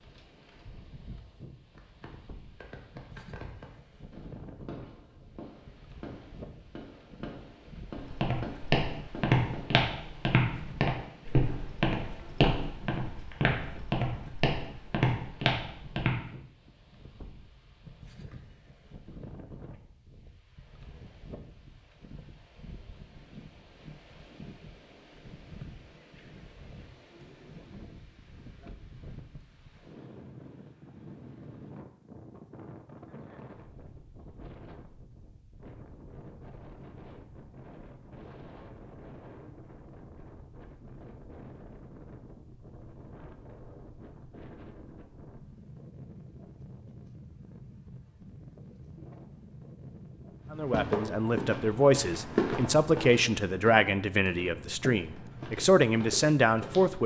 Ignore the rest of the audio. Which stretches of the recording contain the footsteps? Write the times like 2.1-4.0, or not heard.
8.0-16.2, 50.5-57.0.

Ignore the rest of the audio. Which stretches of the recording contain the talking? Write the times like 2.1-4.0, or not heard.
50.5-57.0.